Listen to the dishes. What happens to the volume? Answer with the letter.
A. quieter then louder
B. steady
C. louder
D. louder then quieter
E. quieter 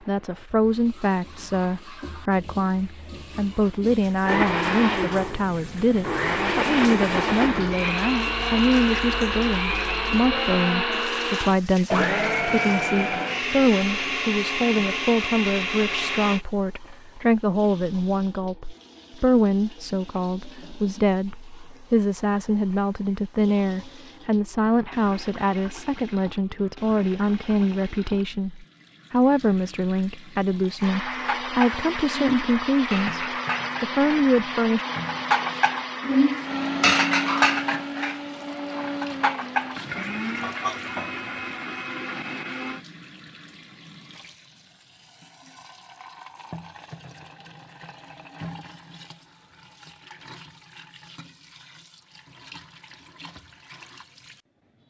D.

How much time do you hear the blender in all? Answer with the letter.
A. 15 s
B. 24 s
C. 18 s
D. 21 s
B.